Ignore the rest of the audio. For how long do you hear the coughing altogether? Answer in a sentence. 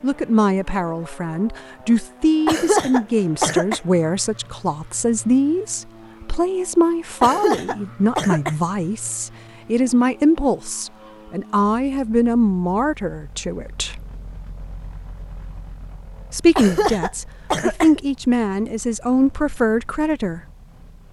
You can hear the coughing for 4 seconds altogether.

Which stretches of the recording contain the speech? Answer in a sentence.
The speech can be heard from 0.0 to 14.0 s and from 16.3 to 20.4 s.